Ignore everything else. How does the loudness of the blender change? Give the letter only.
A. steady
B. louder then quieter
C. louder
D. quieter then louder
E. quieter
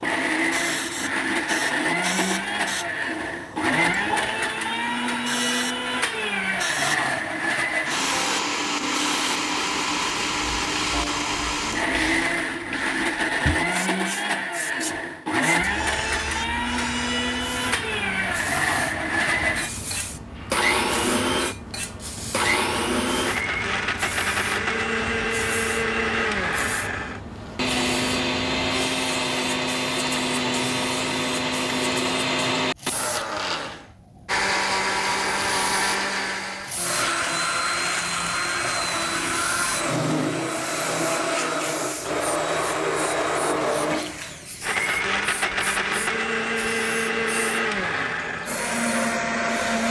A.